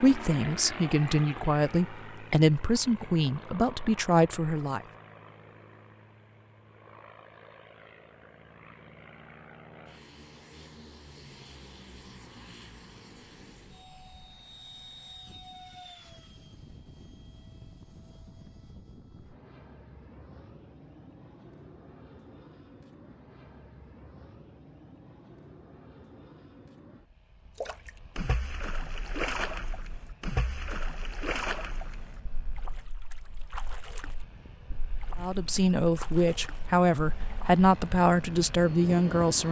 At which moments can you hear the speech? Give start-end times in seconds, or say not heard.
0.0-4.8, 35.1-39.4.